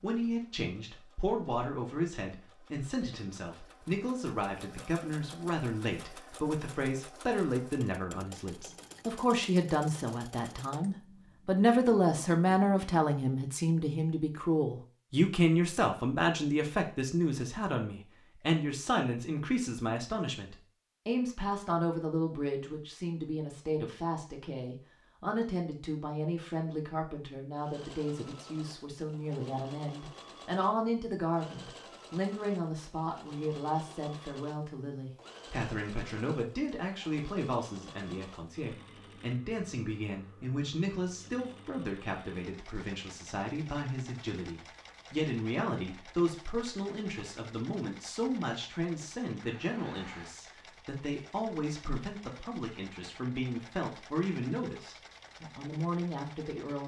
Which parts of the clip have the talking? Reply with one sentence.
You can hear the talking from 0.0 to 56.8 s.